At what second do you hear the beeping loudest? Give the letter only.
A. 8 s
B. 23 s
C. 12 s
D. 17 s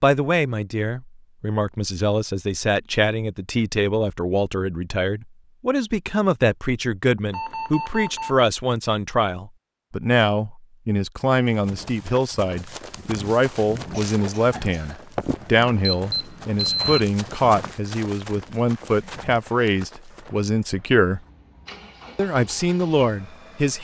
D.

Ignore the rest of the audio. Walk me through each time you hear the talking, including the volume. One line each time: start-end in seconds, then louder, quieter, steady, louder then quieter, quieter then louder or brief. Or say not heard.
0.0-21.2 steady
22.1-23.7 brief.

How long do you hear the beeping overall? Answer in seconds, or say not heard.
2 s.